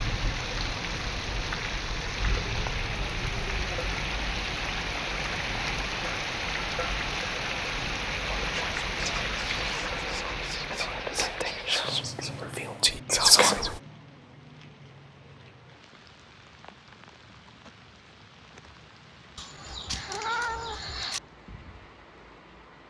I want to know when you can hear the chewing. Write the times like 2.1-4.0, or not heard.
not heard.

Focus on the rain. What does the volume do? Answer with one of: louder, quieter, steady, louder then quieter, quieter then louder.
quieter.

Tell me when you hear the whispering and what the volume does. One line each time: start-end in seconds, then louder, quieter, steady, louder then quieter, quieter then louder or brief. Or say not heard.
8.4-13.7 louder.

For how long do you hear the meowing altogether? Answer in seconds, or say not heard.
2 s.